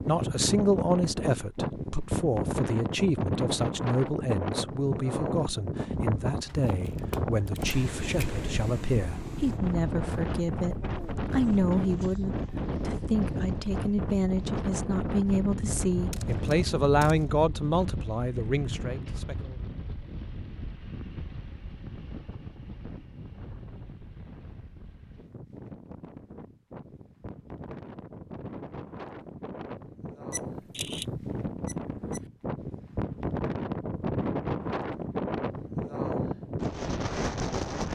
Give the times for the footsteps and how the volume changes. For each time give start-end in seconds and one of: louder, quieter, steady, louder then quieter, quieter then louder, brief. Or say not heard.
not heard.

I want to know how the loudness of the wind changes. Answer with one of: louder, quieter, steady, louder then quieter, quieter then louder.
quieter then louder.